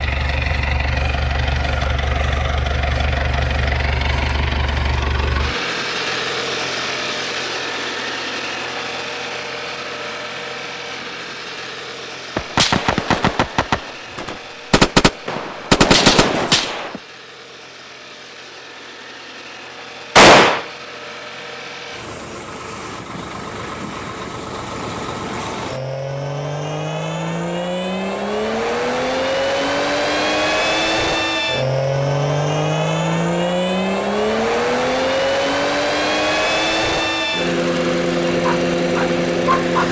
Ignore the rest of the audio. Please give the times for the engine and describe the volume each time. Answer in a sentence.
The engine can be heard from 0.0 to 39.8 s, getting quieter then louder.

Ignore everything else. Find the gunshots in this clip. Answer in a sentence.
You can hear the gunshots from 12.3 to 17.0 s and from 20.1 to 20.6 s.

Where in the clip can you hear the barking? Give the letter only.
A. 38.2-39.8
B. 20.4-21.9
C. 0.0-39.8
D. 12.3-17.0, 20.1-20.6
A.